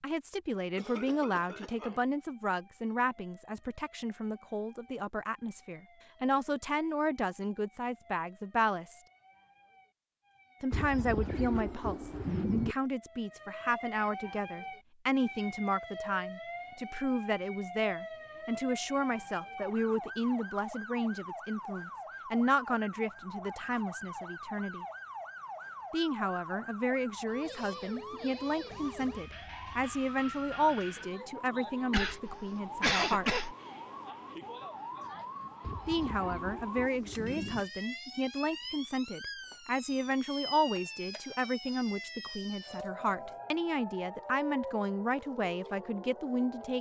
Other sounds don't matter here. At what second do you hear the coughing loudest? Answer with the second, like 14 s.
33 s.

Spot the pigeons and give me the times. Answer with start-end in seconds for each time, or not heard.
10.7-12.8, 35.6-37.6.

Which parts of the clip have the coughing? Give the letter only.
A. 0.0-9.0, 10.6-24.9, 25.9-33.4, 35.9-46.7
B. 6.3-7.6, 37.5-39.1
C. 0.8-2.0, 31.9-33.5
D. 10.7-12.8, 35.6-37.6
C.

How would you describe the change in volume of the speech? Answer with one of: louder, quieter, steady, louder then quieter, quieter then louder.
steady.